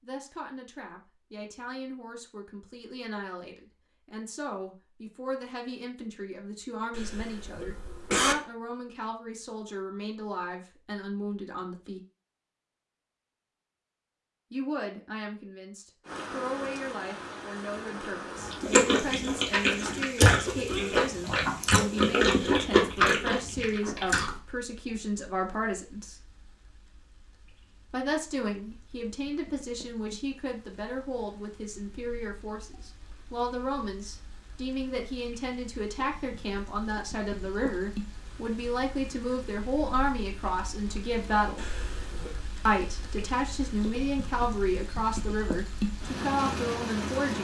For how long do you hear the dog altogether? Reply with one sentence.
The dog can't be heard in this clip.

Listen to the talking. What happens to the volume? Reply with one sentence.
The loudness of the talking goes up.